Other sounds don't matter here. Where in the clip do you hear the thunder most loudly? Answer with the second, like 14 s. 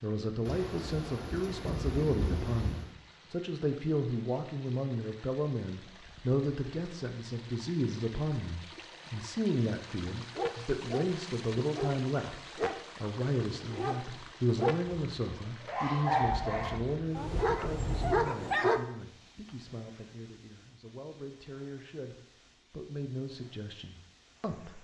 2 s.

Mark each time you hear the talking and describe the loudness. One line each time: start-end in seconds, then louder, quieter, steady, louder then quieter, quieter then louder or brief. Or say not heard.
0.0-24.7 quieter.